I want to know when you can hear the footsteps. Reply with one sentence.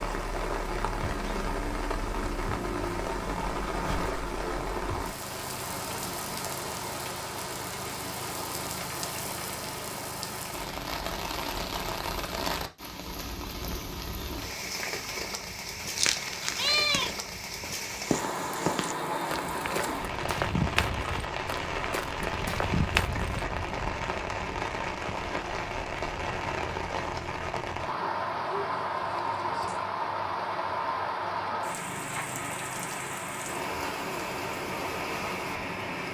You can hear the footsteps from 17.6 to 23.8 s.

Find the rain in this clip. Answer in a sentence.
You can hear the rain from 0.0 to 36.0 s.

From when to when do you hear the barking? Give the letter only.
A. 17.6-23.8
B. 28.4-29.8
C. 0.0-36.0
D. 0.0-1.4
B.